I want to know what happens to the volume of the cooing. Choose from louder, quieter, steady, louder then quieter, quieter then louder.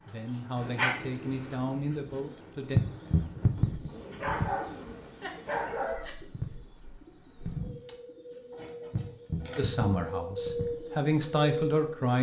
quieter.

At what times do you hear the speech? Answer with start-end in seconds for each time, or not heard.
0.1-2.8, 9.6-12.1.